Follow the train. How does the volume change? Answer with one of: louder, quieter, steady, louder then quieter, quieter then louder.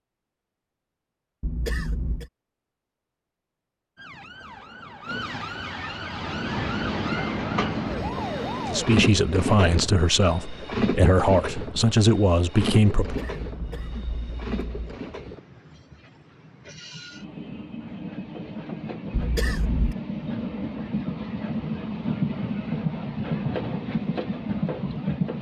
quieter then louder.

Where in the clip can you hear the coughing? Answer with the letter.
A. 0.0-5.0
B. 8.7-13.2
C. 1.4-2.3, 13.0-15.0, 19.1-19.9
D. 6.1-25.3
C.